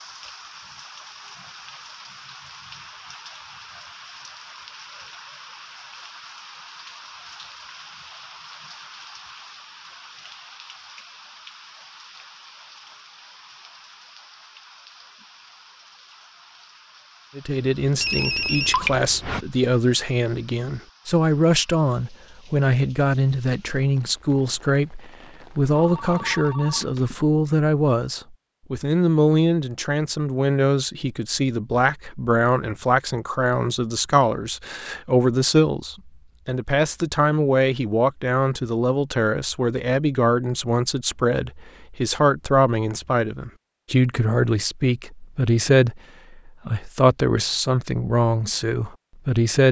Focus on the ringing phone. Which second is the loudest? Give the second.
19 s.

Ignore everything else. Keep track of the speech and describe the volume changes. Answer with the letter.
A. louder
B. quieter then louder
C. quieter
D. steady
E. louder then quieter
D.